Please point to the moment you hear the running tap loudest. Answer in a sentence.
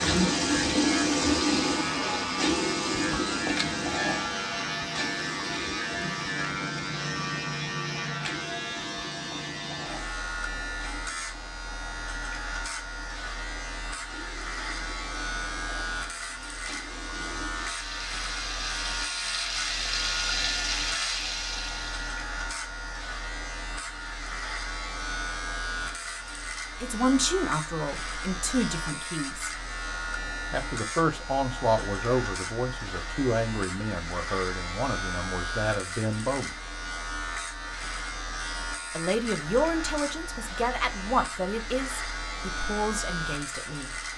The loudest moment of the running tap is at 1 second.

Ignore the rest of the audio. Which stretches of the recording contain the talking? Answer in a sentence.
The talking can be heard from 26.8 to 29.5 s, from 30.5 to 36.5 s and from 39.0 to 44.0 s.